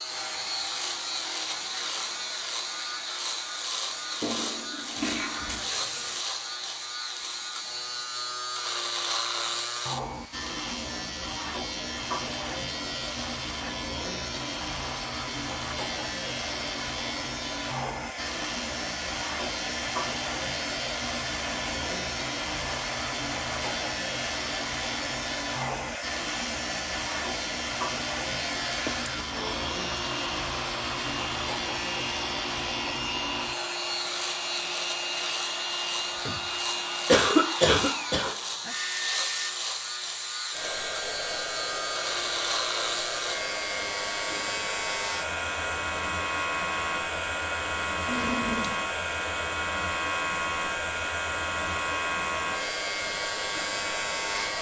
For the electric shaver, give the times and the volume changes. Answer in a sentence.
The electric shaver can be heard from 0.0 to 54.5 s, at a steady volume.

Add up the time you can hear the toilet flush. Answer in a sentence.
The toilet flush can be heard for 3 seconds in total.